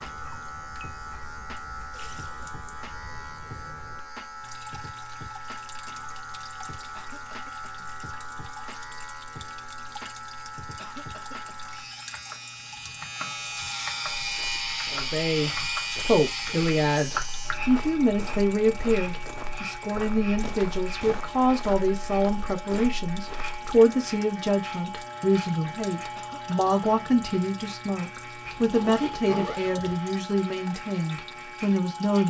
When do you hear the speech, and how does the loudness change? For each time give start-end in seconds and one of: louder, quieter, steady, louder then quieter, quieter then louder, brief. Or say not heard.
14.9-32.2 steady.